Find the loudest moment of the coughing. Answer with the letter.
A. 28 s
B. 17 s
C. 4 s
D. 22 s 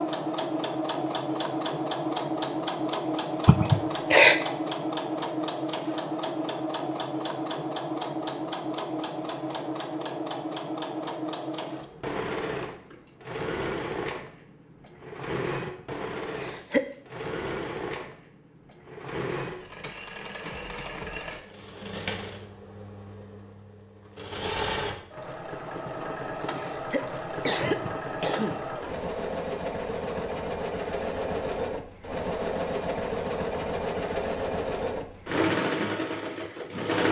C.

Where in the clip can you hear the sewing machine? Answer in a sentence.
The sewing machine can be heard from 0.0 to 37.0 s.